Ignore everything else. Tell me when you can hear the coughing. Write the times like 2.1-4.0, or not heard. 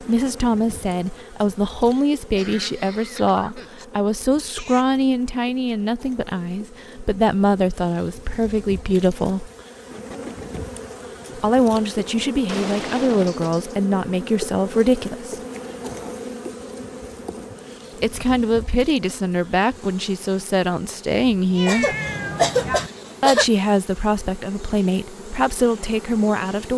1.9-3.9, 21.6-23.4.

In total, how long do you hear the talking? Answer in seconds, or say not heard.
21 s.